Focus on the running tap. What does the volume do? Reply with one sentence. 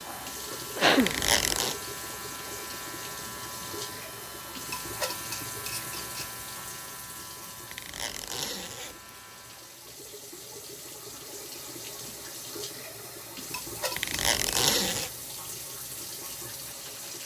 The volume of the running tap goes down, then up.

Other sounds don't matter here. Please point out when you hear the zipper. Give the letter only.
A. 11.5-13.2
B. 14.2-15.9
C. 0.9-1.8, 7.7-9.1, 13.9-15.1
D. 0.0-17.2
C.